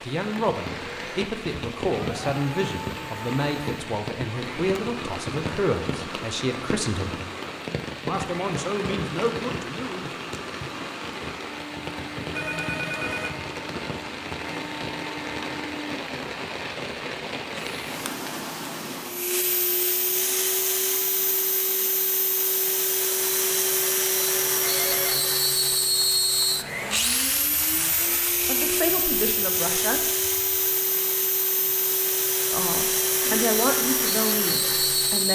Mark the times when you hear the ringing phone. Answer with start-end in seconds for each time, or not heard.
12.3-13.3, 24.6-25.3.